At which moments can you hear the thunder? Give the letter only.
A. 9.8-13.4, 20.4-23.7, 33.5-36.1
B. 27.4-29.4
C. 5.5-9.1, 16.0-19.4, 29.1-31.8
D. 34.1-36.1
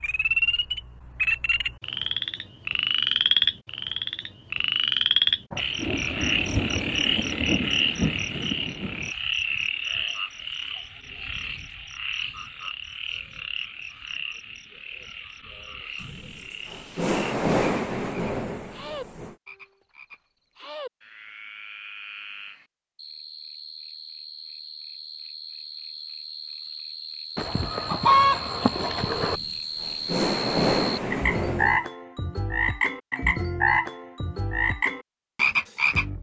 C.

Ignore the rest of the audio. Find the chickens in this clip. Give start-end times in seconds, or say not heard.
27.4-29.4.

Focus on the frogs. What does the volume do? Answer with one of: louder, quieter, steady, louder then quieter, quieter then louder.
quieter then louder.